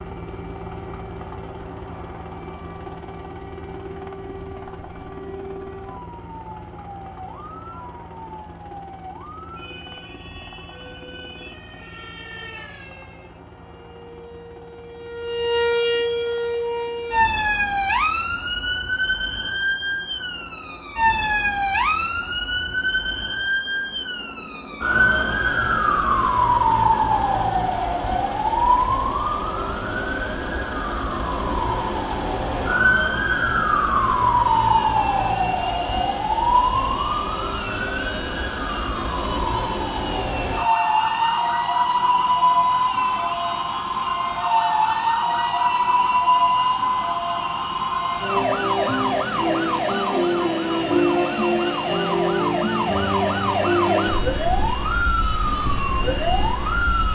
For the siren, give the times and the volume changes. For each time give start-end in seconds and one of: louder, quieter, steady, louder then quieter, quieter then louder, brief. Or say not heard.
0.0-57.1 louder.